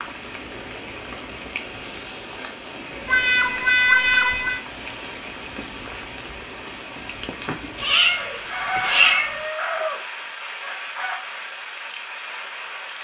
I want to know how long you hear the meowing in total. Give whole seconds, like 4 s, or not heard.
3 s.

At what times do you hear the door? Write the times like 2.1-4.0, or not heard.
not heard.